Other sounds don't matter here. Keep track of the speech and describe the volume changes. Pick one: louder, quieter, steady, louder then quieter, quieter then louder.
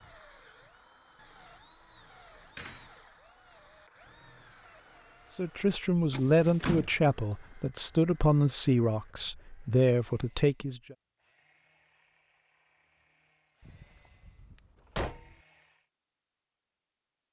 steady.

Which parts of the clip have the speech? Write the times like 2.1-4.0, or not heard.
5.3-10.9.